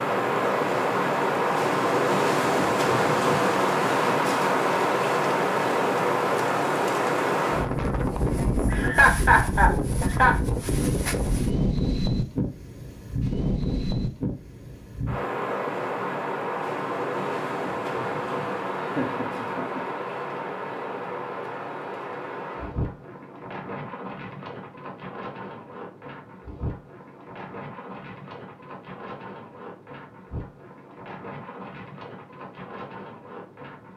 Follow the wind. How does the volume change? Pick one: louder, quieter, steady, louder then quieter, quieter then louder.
quieter.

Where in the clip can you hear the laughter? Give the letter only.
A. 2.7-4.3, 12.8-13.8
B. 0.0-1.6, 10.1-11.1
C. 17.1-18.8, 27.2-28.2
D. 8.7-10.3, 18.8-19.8
D.